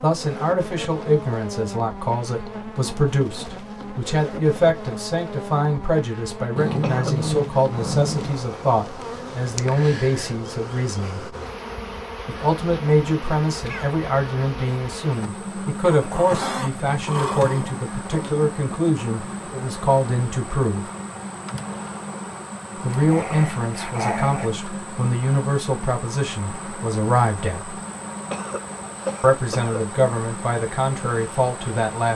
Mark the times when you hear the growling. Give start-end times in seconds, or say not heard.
6.5-8.4, 15.8-18.5, 22.9-24.5.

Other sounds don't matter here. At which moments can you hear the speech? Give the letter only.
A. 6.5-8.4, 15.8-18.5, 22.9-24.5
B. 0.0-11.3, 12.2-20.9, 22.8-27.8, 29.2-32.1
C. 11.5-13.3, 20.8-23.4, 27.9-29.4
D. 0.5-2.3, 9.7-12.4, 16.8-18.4
B.